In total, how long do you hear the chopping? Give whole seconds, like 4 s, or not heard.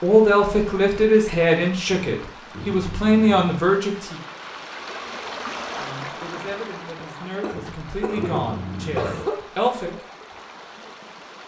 not heard.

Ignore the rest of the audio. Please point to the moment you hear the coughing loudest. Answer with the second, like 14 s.
9 s.